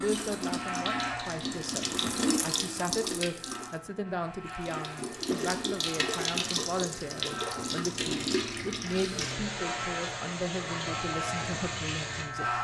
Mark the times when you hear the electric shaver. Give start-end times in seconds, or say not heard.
0.0-12.5.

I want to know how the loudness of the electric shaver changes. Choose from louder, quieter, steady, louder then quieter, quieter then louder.
quieter then louder.